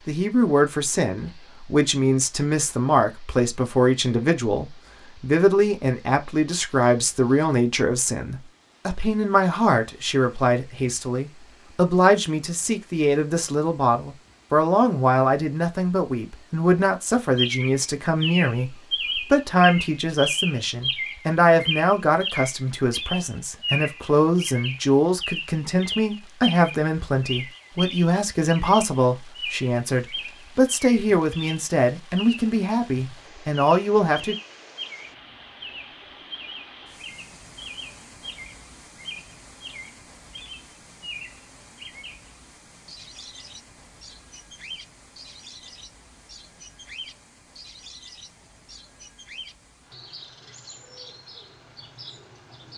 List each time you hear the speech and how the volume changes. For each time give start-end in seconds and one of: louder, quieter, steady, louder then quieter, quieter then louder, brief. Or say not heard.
0.1-34.4 steady.